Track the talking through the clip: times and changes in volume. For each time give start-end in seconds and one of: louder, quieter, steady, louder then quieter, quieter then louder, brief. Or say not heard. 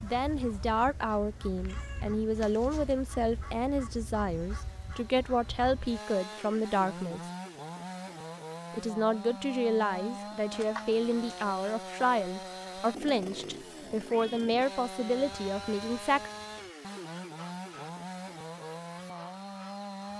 0.0-7.2 steady
8.7-16.3 steady.